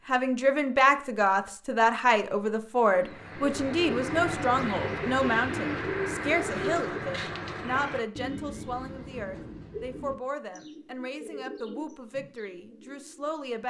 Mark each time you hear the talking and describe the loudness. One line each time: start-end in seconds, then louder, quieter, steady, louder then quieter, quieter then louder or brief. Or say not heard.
0.1-13.6 quieter.